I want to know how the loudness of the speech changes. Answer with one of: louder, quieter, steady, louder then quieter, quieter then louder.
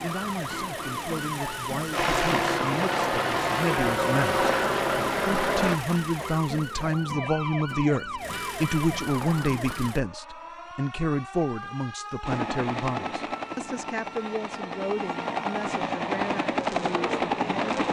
louder then quieter.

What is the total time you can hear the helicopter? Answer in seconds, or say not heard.
11 s.